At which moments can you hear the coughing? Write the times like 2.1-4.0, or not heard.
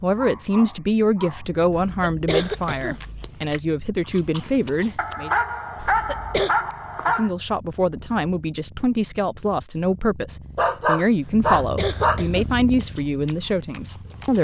1.7-3.1, 5.8-6.5, 11.2-12.6.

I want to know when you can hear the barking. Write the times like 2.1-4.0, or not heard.
0.1-1.6, 5.0-7.3, 10.6-12.2.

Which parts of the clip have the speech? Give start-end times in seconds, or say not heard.
0.0-5.3, 7.0-14.3.